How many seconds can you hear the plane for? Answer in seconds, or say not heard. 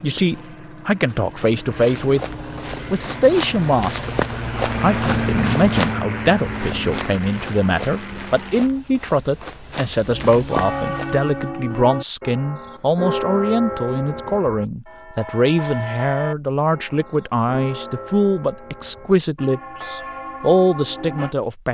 9 s.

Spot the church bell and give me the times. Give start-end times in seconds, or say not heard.
10.1-21.4.